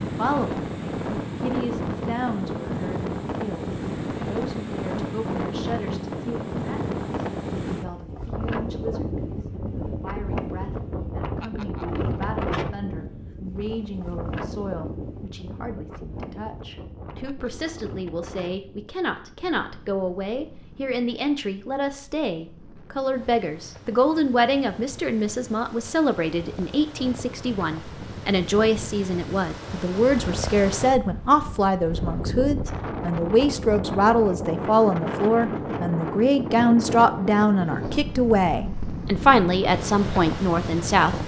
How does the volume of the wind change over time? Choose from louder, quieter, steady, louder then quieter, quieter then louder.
quieter then louder.